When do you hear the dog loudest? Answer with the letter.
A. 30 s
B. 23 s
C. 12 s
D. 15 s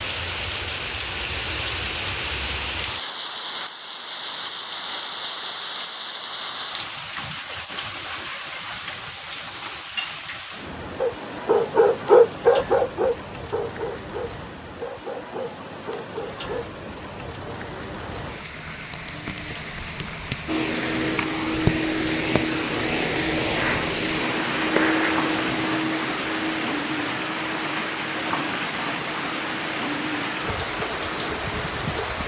C.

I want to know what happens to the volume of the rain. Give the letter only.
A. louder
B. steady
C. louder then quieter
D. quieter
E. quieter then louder
E.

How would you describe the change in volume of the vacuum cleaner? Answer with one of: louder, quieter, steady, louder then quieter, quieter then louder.
quieter.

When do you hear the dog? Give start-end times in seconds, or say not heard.
10.9-16.7.